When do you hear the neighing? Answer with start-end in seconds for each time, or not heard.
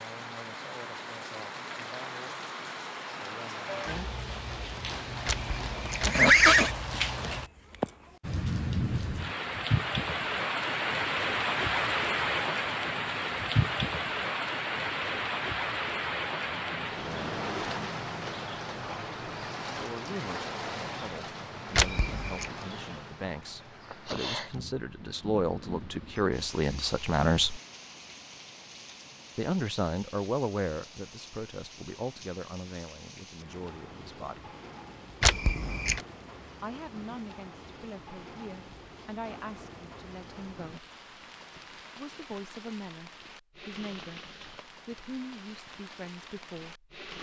5.2-6.8, 21.8-22.4, 35.2-36.0.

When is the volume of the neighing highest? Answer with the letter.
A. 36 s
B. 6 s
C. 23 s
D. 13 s
B.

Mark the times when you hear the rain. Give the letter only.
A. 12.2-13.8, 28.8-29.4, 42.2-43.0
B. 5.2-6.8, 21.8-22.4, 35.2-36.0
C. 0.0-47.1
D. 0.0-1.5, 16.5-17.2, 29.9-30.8
C.